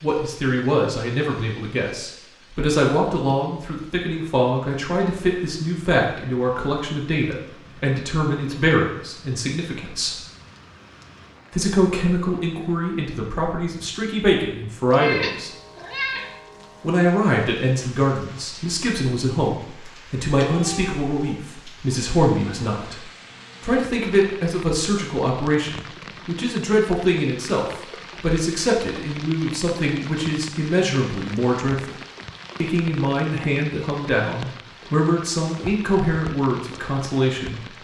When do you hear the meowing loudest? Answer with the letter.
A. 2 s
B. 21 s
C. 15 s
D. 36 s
C.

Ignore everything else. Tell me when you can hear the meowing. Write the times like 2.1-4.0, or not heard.
14.9-16.3, 20.4-21.4.